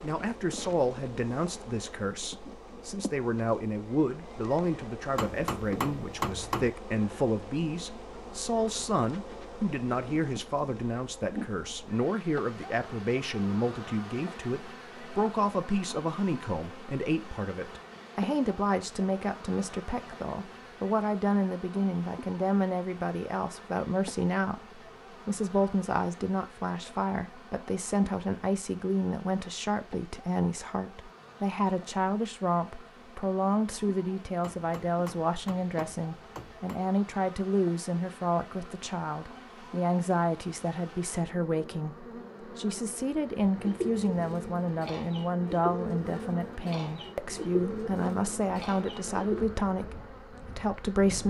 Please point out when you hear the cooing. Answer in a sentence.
You can hear the cooing from 43.5 to 49.5 s.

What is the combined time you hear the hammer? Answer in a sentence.
The hammer can be heard for 4 seconds in total.